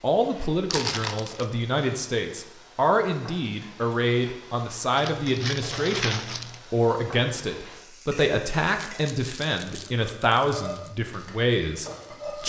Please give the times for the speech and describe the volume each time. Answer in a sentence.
The speech can be heard from 0.0 to 12.4 s, at a steady volume.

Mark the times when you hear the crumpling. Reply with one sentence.
The crumpling can be heard from 0.7 to 1.4 s, from 5.0 to 6.6 s and from 8.8 to 10.9 s.